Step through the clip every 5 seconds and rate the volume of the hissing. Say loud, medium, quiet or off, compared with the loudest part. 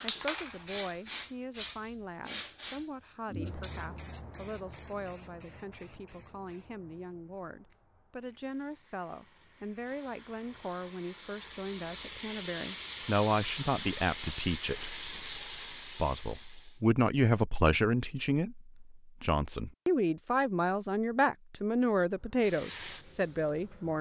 loud, quiet, loud, loud, medium.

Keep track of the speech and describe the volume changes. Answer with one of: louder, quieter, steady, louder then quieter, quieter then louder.
louder.